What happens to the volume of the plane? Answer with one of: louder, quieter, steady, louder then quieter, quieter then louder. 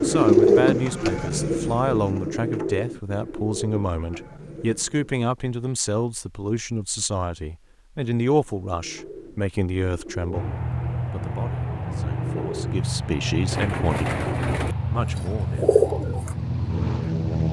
steady.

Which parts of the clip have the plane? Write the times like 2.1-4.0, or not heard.
10.3-17.4.